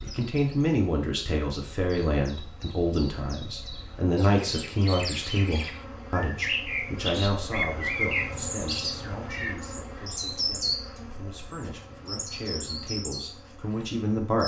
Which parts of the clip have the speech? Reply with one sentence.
The speech can be heard from 0.0 to 14.4 s.